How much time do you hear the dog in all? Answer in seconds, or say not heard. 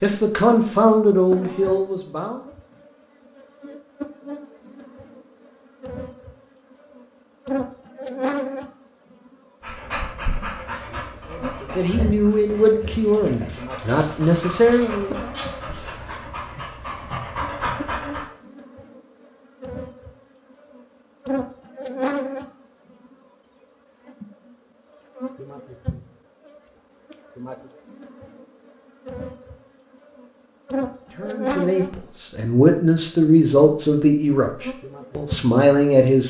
9 s.